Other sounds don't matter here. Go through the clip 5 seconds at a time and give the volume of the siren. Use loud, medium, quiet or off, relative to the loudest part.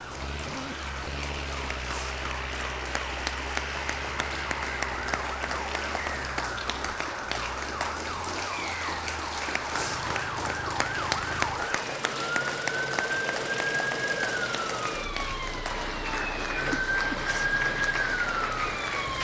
medium, medium, loud, loud.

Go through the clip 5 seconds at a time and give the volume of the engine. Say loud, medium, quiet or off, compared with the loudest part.
loud, loud, loud, medium.